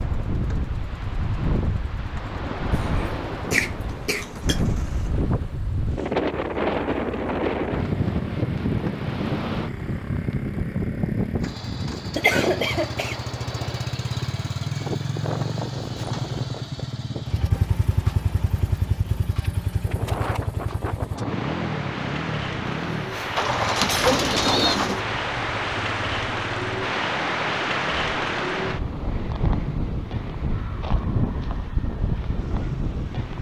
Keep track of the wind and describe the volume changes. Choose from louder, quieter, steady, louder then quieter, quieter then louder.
quieter then louder.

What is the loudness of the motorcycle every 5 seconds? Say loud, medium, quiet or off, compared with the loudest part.
quiet, medium, loud, loud, loud, medium, medium.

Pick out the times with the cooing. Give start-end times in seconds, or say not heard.
23.4-25.1.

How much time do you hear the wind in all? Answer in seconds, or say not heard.
33 s.